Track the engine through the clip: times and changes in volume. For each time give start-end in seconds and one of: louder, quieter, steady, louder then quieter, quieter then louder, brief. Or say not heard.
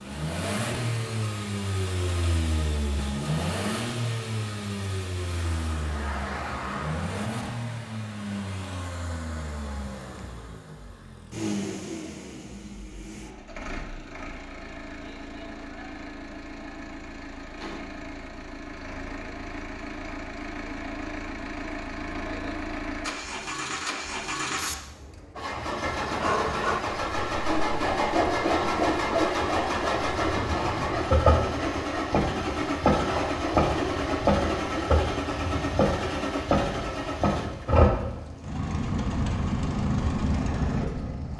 0.0-41.3 quieter then louder.